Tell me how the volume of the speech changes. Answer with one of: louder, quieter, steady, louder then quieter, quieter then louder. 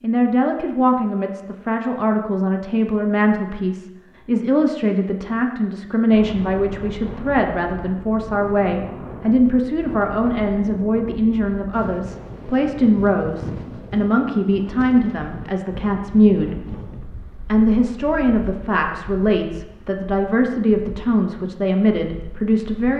steady.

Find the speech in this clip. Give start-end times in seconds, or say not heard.
0.0-16.6, 17.4-22.9.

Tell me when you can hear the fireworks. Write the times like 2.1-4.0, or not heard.
not heard.